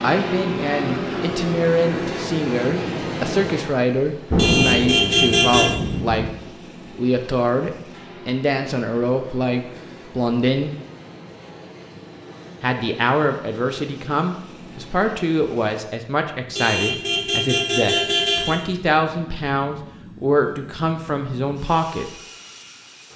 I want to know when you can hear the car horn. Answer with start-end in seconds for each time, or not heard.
4.3-5.7, 16.6-18.6.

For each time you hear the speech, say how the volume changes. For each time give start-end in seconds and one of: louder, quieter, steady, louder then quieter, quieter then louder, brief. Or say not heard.
0.0-10.7 steady
12.6-22.1 steady.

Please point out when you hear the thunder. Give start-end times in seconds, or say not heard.
4.3-6.3.